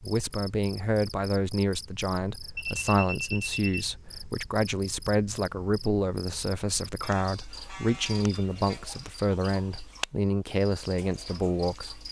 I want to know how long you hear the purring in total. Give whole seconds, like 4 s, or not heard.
not heard.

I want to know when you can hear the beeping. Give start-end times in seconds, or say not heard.
2.5-3.9, 7.0-8.8.